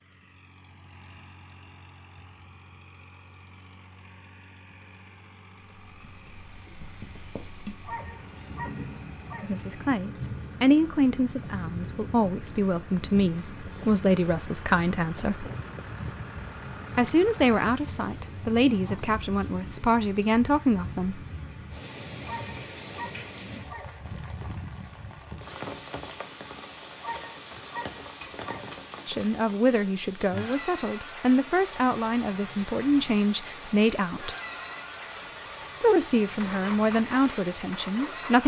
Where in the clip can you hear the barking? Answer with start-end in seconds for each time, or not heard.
7.8-9.6, 22.2-24.0, 27.0-28.8.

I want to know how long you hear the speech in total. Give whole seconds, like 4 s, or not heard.
18 s.